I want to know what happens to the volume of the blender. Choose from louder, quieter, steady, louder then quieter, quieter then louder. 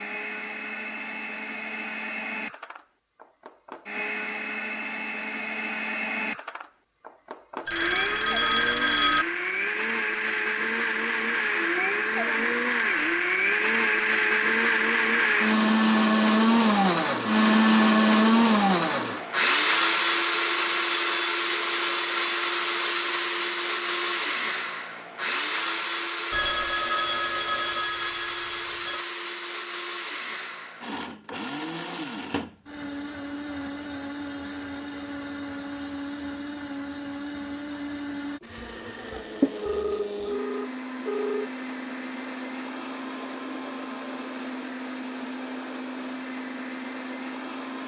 louder then quieter.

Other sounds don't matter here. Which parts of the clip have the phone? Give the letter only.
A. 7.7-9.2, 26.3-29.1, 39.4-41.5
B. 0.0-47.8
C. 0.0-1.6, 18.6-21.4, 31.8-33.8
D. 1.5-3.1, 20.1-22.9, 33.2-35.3
A.